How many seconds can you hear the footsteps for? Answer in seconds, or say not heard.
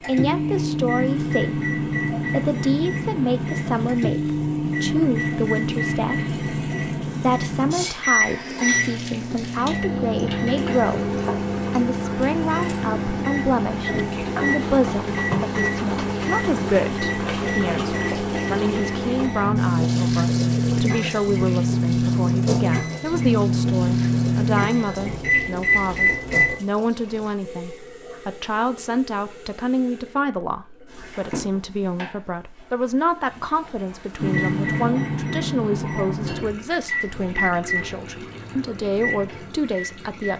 not heard.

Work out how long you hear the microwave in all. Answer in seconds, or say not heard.
33 s.